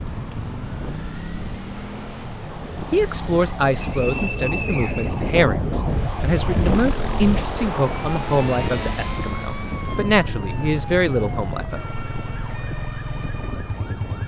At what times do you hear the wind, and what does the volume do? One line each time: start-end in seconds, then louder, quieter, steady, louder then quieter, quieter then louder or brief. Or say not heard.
0.0-14.2 louder then quieter.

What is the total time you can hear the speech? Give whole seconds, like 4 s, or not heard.
9 s.